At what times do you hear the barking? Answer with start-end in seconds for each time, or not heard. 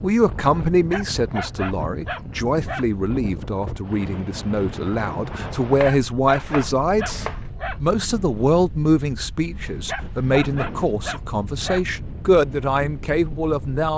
0.9-2.9, 5.8-7.8, 9.8-11.8.